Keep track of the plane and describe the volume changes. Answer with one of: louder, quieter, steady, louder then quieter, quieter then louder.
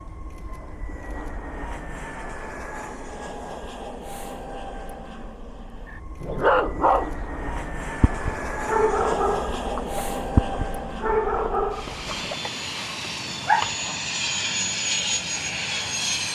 louder.